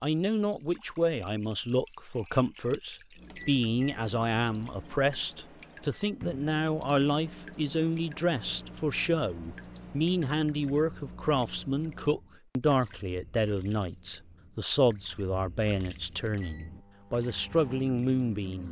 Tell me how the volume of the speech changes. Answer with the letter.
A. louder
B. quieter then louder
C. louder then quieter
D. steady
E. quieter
D.